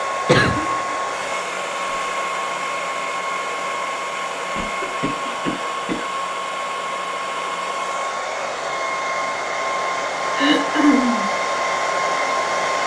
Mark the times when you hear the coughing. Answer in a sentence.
The coughing can be heard from 0.2 to 1.3 s, from 4.5 to 6.1 s and from 10.3 to 11.3 s.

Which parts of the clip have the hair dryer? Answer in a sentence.
The hair dryer can be heard from 0.0 to 12.8 s.